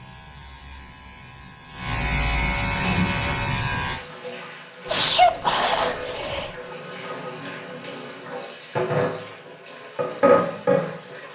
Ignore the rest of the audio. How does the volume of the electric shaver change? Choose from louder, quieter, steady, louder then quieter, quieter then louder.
louder.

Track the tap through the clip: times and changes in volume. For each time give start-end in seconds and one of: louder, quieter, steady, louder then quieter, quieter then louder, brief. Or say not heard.
2.7-11.3 louder.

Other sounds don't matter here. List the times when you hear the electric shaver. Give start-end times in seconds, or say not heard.
0.0-4.0.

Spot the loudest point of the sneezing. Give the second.
5 s.